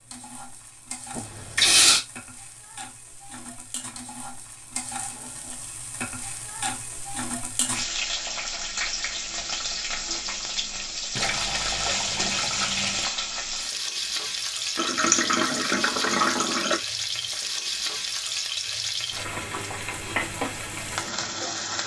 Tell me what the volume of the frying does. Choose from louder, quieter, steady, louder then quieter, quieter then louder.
louder.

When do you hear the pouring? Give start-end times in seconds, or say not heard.
1.1-2.0, 11.2-13.1, 14.8-16.8.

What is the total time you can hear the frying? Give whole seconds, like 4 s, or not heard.
22 s.